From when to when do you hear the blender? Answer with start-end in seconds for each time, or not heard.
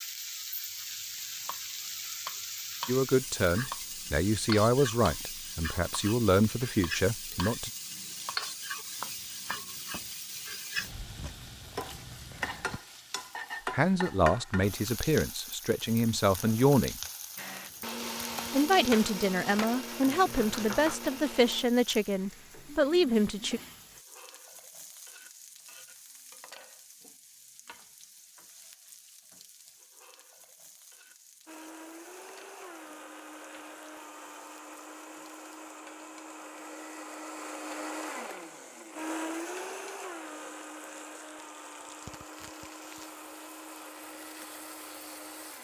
17.4-21.6, 31.4-45.5.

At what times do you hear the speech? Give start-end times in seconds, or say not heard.
2.9-7.7, 13.7-17.0, 18.5-23.6.